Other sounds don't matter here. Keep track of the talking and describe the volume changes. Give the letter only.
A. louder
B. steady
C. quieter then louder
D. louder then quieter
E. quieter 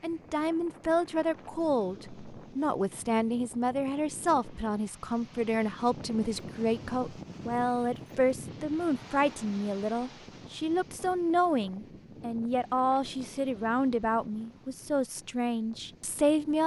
B.